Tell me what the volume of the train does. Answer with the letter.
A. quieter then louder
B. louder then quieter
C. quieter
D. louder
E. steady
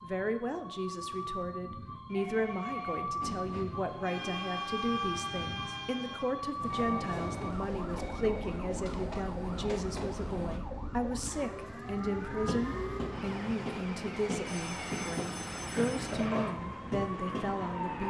E.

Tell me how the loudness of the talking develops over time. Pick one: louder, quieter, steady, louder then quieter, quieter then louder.
steady.